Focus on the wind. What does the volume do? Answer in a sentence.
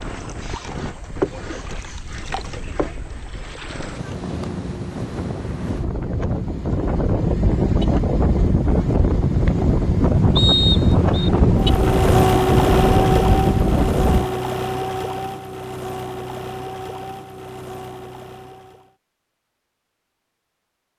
The volume of the wind goes up.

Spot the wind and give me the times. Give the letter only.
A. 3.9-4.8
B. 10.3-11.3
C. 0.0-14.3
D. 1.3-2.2
C.